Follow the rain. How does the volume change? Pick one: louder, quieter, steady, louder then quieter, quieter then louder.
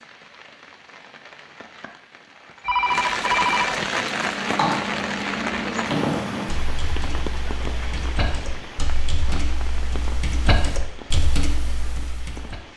louder then quieter.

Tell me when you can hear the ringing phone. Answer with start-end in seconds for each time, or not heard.
2.6-3.9.